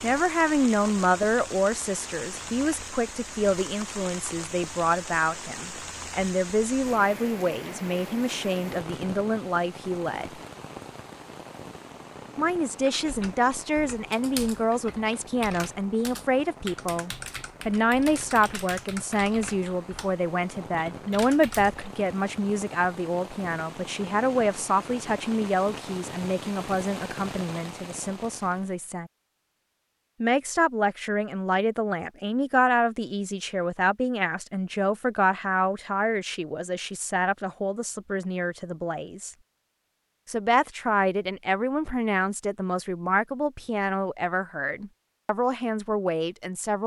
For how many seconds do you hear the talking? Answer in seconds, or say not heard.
43 s.